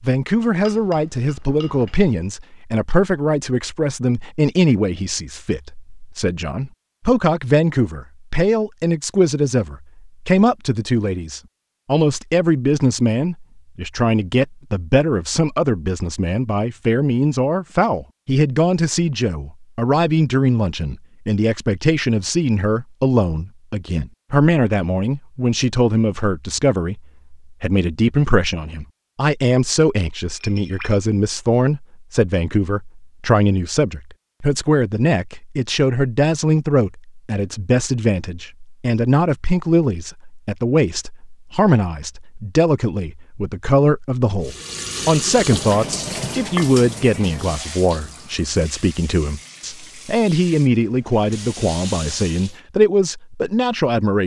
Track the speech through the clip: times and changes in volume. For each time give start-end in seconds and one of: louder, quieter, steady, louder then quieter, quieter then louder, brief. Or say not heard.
0.0-54.2 steady.